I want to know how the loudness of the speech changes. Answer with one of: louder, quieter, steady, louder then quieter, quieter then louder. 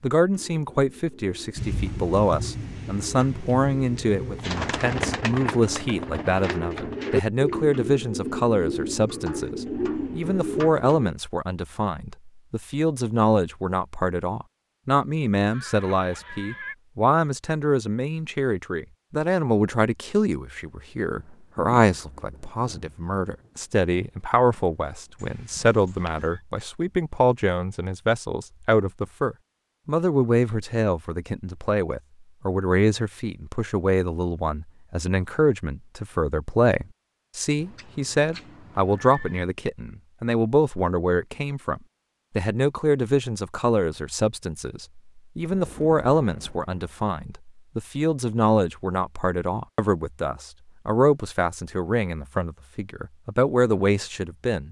steady.